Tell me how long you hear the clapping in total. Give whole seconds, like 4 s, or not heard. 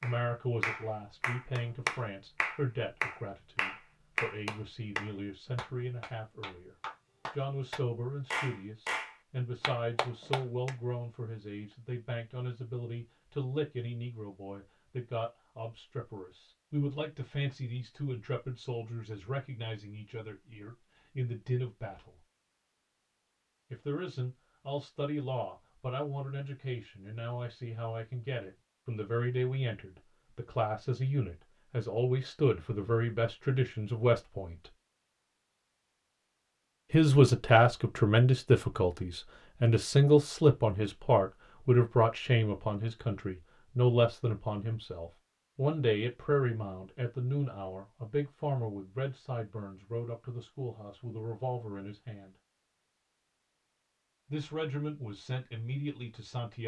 11 s.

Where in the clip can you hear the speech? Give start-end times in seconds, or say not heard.
0.0-6.8, 7.3-22.1, 23.7-34.7, 36.9-52.4, 54.3-56.6.